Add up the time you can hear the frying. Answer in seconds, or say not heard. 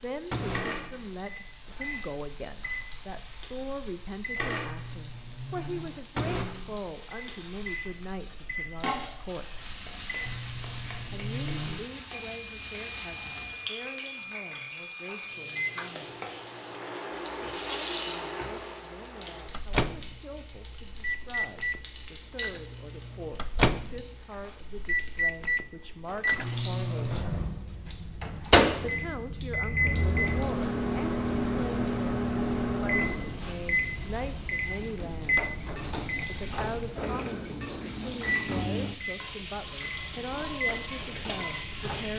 42 s.